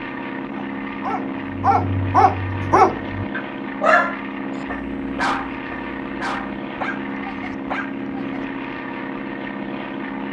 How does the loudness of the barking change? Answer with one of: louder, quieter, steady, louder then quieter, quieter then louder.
quieter.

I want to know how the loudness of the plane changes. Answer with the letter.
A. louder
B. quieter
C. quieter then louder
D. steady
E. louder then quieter
D.